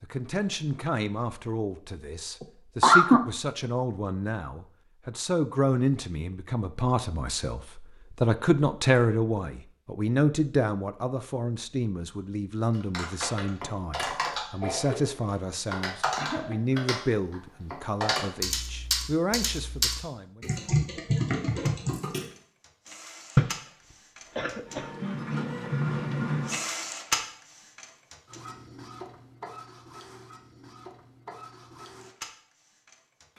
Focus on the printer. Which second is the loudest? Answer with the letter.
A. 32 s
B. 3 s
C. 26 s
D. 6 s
C.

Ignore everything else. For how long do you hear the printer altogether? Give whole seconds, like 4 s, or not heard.
12 s.